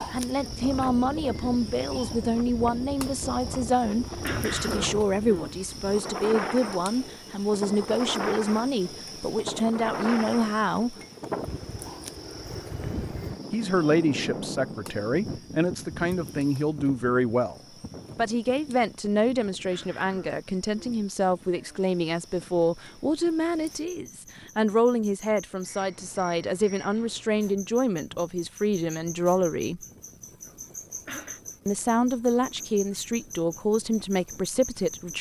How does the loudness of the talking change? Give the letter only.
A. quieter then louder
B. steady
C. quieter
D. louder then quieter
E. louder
B.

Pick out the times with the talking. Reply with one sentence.
You can hear the talking from 0.1 to 10.9 s, from 13.5 to 29.8 s and from 31.6 to 35.1 s.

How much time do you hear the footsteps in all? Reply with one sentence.
You can't hear the footsteps here.